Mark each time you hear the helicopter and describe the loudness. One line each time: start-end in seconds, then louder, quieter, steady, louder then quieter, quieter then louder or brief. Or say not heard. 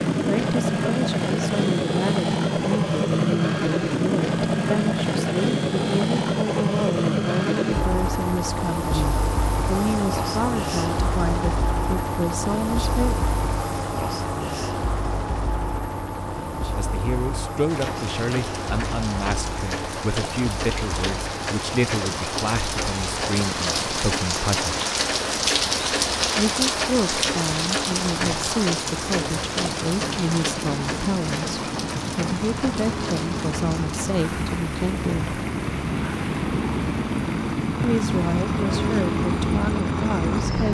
0.0-40.6 quieter then louder.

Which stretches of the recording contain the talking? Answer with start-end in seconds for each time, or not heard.
0.1-13.2, 16.8-24.8, 26.4-35.4, 37.8-40.6.